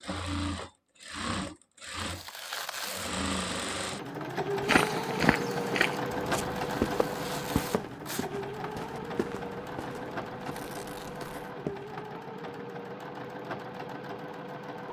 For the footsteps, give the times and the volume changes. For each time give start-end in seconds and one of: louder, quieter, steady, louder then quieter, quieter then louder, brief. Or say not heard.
4.7-11.9 quieter.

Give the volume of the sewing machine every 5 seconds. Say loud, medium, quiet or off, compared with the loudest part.
loud, loud, medium.